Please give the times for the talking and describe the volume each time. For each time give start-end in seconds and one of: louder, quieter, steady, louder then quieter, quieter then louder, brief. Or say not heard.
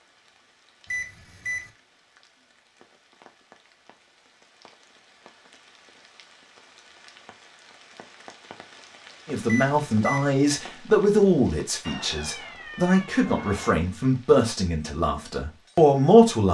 9.2-16.5 steady.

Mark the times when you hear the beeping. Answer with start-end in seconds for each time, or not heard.
0.8-1.7, 9.4-10.3.